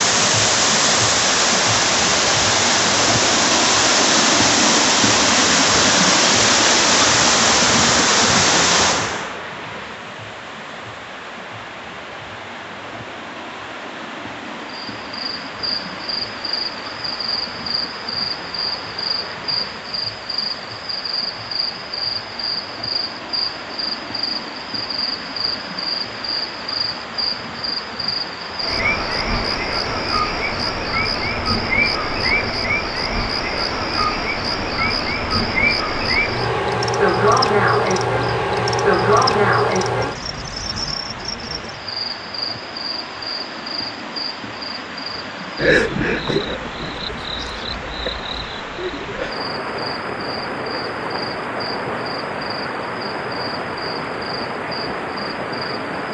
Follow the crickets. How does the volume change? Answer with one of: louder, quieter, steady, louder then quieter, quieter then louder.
louder then quieter.